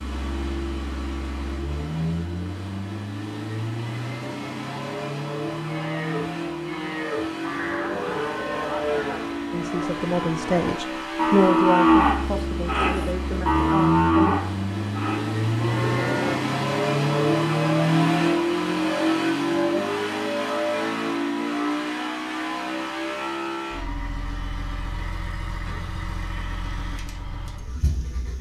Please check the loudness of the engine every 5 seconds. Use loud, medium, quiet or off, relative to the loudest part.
medium, medium, medium, loud, medium, quiet.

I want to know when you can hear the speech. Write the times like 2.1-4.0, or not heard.
9.5-14.3.